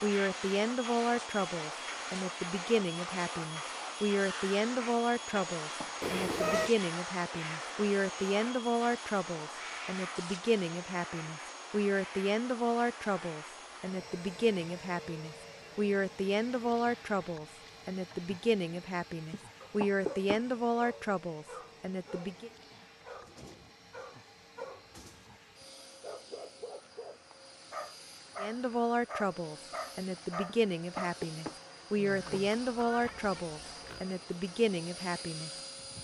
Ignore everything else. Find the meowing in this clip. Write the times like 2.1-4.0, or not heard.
6.0-6.7, 32.0-34.0.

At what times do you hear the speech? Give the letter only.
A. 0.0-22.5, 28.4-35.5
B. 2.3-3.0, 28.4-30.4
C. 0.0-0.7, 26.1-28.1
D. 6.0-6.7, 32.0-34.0
A.